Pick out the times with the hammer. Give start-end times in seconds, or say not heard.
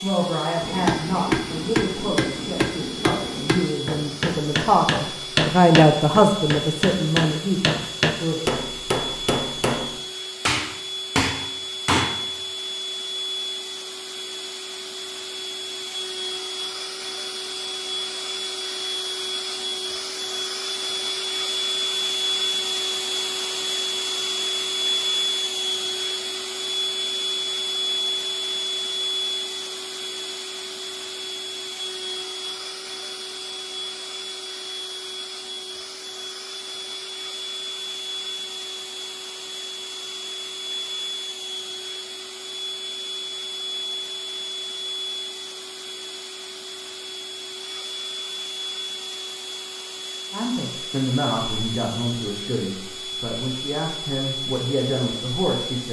0.6-12.2.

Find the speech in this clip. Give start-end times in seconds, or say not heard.
0.0-8.4, 50.3-55.8.